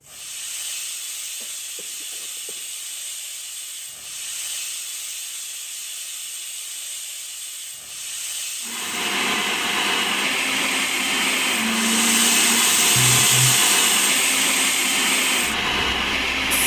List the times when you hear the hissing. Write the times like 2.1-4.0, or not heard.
0.0-16.6.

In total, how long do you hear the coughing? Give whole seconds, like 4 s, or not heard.
2 s.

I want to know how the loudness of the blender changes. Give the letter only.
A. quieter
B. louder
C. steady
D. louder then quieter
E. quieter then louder
C.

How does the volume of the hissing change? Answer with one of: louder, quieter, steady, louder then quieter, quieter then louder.
louder.